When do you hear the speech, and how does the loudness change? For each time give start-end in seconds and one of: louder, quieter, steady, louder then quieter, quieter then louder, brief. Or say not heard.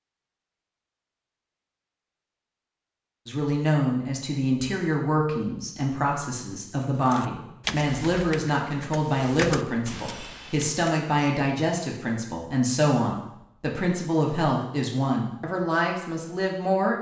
3.2-16.9 steady.